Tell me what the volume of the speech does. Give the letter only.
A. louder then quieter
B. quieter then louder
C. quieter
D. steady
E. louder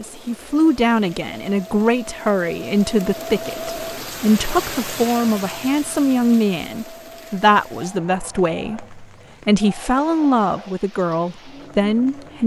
D.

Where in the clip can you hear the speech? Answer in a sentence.
You can hear the speech from 0.0 to 12.4 s.